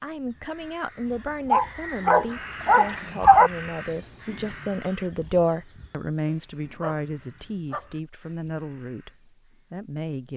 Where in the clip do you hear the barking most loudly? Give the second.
3 s.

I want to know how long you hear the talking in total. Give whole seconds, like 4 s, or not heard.
10 s.